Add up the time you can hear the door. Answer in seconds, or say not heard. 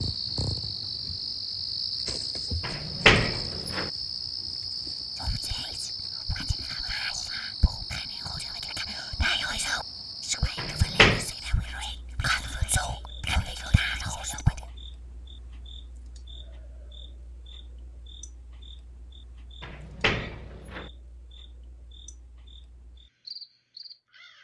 3 s.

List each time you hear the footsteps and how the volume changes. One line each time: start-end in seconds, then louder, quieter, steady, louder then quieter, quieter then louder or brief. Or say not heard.
not heard.